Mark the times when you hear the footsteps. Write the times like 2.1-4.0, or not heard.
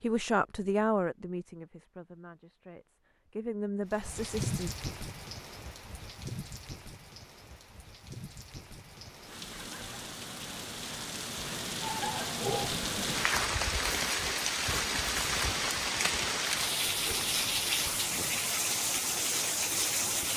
not heard.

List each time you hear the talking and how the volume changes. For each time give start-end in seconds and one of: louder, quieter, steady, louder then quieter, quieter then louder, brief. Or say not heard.
0.0-4.7 quieter then louder.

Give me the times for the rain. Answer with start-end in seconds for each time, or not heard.
3.9-20.3.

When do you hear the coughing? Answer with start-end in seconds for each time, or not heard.
12.4-13.1.